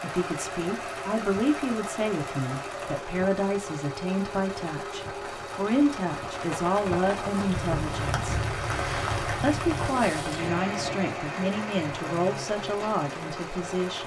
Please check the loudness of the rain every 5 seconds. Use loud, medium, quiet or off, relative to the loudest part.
medium, loud, loud.